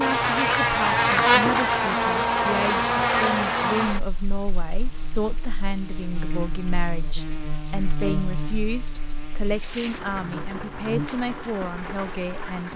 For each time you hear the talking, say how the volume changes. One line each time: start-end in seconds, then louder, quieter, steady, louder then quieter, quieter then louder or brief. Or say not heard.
0.0-12.7 steady.